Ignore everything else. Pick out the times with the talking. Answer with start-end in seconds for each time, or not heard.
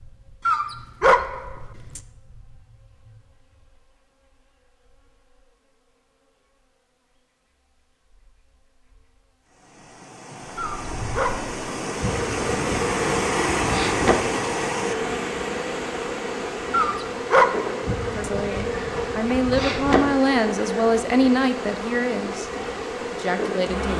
18.1-22.4, 23.1-23.9.